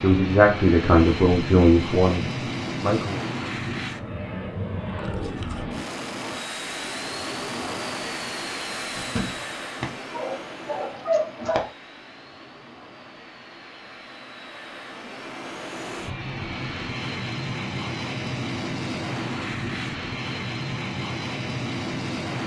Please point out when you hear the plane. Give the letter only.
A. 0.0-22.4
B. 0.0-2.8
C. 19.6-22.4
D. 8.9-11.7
A.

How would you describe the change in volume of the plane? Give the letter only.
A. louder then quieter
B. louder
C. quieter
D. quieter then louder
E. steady
D.